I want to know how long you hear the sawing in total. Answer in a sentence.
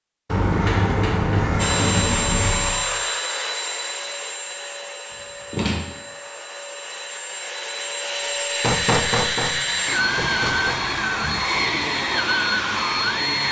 The sawing can't be heard in this clip.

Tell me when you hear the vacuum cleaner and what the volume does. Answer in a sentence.
The vacuum cleaner can be heard from 1.6 to 13.4 s, getting quieter then louder.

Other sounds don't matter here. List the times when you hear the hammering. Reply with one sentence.
You can hear the hammering from 8.6 to 10.8 s.